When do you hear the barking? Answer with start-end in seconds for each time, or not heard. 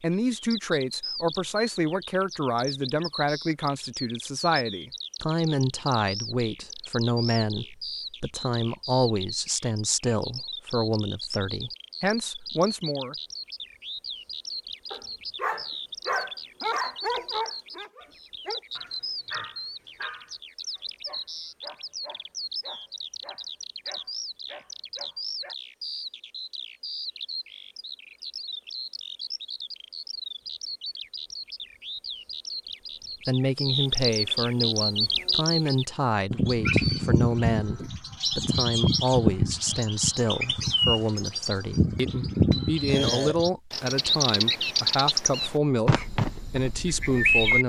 14.9-25.6.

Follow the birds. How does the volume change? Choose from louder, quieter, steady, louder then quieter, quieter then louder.
louder.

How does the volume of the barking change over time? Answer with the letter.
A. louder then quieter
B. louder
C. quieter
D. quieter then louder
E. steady
C.